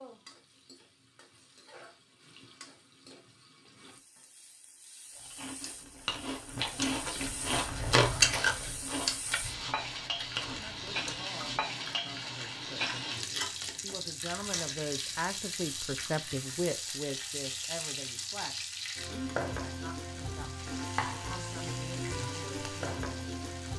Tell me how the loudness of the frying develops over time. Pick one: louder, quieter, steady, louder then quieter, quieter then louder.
louder.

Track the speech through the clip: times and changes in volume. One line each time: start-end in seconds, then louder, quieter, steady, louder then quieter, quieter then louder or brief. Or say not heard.
10.6-23.4 louder then quieter.